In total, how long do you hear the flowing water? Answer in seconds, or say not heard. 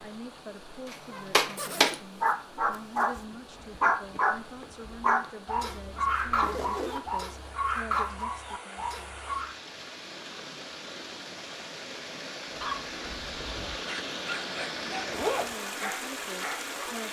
17 s.